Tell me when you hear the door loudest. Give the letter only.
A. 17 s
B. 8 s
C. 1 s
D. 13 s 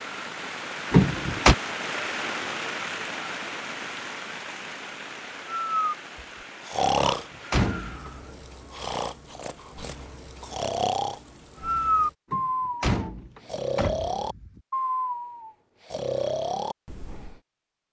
C.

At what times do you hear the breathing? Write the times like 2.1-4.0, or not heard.
5.5-17.4.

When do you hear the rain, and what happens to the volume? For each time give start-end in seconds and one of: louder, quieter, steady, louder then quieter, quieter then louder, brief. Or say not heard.
0.0-12.2 quieter.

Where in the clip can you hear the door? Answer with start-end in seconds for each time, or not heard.
0.9-1.6, 7.0-8.1, 12.3-14.6.